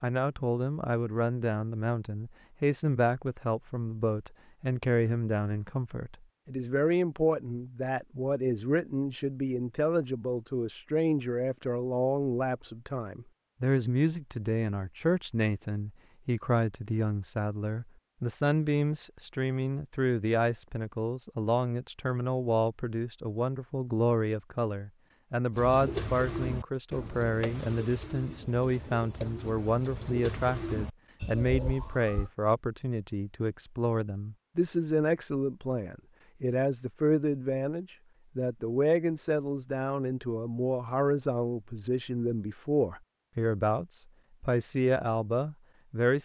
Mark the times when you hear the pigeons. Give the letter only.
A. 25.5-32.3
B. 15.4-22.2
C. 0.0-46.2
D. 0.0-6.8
A.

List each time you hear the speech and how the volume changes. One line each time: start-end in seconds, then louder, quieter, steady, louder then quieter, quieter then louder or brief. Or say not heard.
0.0-46.2 steady.